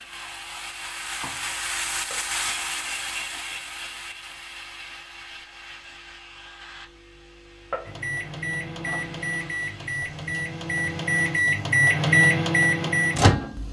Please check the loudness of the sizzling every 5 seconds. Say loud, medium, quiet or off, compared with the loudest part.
loud, medium, medium.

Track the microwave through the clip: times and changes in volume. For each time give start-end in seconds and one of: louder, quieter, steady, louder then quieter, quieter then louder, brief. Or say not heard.
7.8-13.6 louder.